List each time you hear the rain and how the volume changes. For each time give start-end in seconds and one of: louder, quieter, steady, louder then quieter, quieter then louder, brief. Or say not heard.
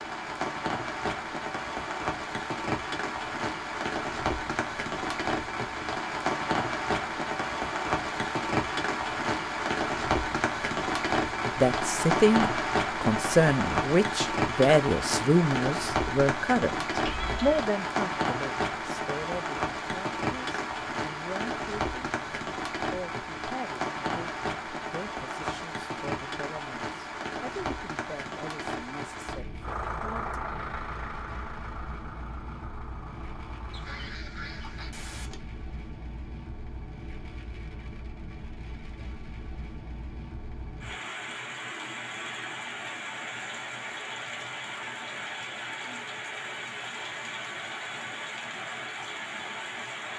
0.0-50.1 quieter then louder.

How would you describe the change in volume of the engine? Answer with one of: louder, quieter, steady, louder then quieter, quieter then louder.
quieter.